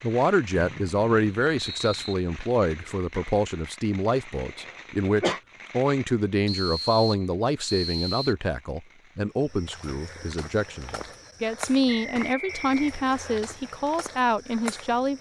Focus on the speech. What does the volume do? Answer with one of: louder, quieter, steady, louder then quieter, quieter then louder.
steady.